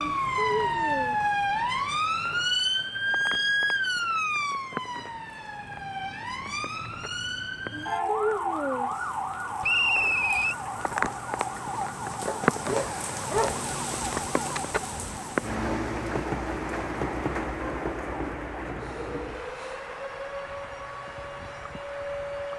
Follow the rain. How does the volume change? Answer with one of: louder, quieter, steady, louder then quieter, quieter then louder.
louder then quieter.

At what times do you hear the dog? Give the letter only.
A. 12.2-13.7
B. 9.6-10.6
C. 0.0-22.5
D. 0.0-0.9
A.